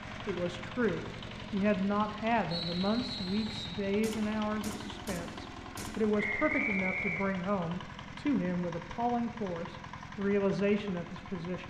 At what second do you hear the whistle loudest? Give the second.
7 s.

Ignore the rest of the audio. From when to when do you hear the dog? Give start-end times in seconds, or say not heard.
not heard.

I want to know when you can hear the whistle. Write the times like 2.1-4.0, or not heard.
2.5-3.8, 6.2-7.2.